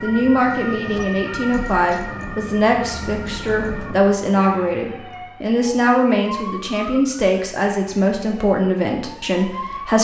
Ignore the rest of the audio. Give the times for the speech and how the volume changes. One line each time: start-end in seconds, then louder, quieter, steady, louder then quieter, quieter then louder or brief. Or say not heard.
0.0-9.9 steady.